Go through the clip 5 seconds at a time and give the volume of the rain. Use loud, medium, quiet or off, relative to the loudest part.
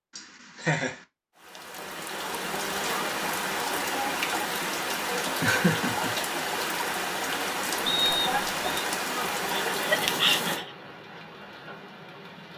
loud, loud, medium.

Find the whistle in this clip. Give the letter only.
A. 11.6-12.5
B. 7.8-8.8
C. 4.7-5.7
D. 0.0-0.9
B.